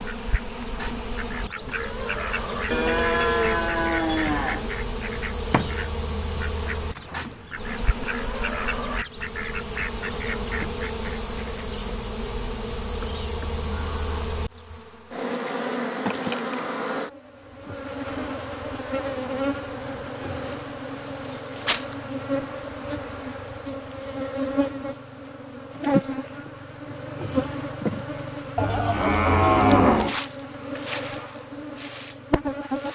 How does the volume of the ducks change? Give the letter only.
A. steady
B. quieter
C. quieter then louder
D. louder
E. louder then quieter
A.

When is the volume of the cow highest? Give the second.
30 s.